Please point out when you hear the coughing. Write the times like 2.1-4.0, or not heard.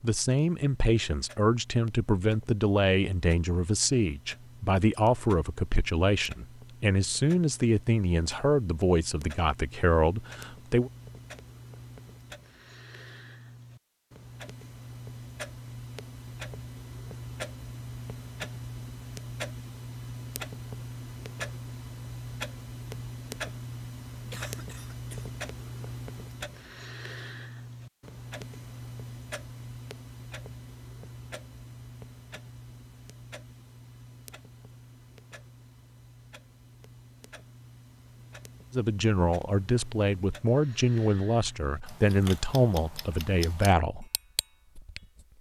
24.1-25.3.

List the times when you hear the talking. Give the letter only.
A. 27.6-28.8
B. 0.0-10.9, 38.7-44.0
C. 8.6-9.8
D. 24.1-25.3
B.